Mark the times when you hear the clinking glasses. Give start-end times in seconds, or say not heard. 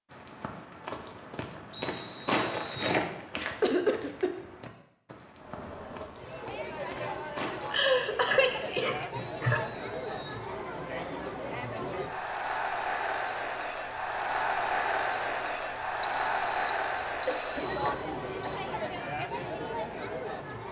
not heard.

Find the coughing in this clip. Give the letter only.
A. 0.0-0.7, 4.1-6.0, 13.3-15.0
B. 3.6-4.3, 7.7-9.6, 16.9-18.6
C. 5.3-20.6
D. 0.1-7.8
B.